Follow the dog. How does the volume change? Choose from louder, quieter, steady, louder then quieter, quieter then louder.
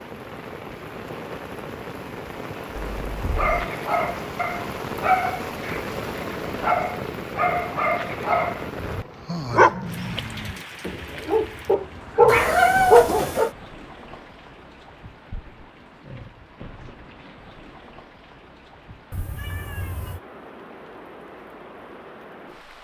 louder.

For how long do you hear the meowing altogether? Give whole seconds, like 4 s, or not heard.
3 s.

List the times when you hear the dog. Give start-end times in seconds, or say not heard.
3.4-13.3.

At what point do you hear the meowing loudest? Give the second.
13 s.